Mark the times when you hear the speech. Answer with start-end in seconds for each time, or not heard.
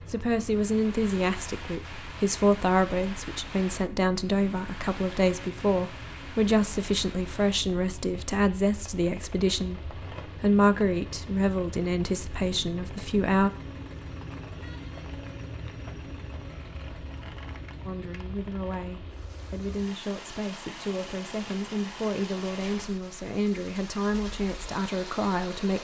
0.0-13.5, 17.9-25.8.